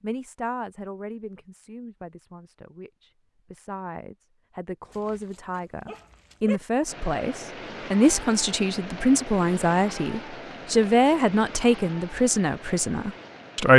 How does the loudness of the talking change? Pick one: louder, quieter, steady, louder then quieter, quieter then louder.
louder.